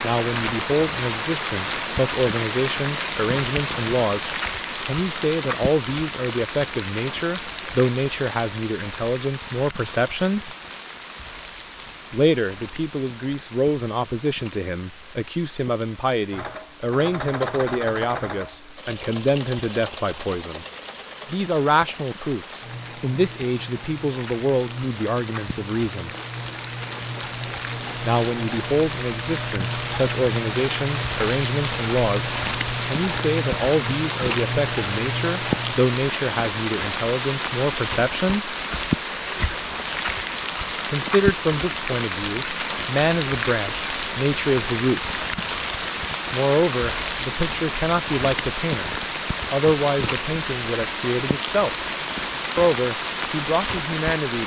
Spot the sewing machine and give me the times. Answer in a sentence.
You can hear the sewing machine from 16.3 to 35.8 s.